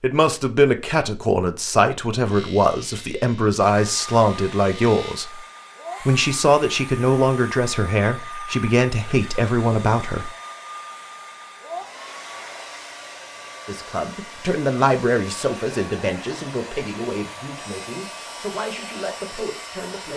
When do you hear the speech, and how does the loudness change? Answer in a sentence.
The speech can be heard from 0.0 to 10.3 s, at a steady volume; and from 13.7 to 20.1 s, getting quieter.